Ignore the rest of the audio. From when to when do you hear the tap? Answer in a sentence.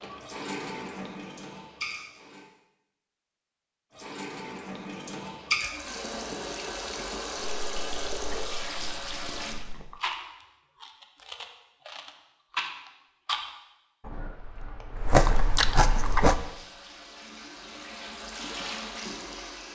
The tap can be heard from 0.0 to 2.5 s, from 3.9 to 9.6 s and from 16.0 to 19.7 s.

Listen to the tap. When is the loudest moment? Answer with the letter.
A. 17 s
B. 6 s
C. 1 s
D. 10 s
B.